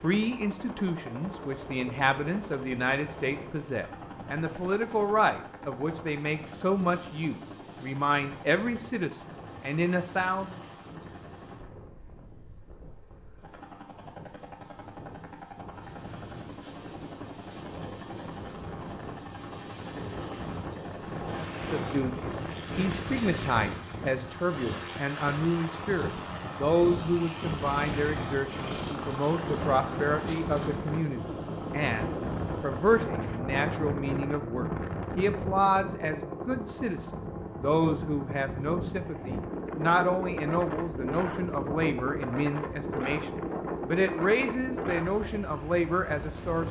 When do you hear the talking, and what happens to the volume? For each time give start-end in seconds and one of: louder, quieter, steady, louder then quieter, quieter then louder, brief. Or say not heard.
0.0-10.6 steady
21.3-46.6 steady.